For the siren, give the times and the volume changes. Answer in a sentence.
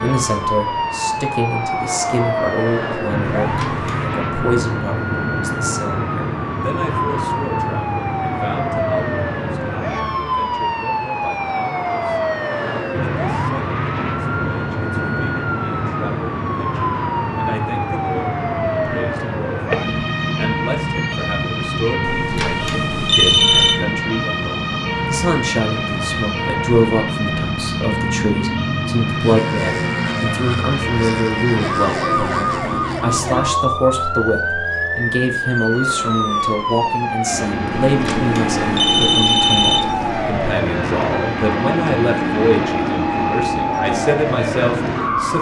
The siren can be heard from 0.0 to 45.3 s, at a steady volume.